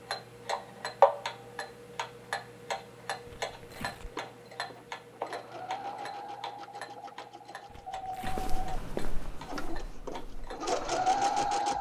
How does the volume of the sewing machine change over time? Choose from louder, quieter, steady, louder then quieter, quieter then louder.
louder.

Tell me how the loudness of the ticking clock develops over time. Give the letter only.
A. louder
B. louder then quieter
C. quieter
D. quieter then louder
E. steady
C.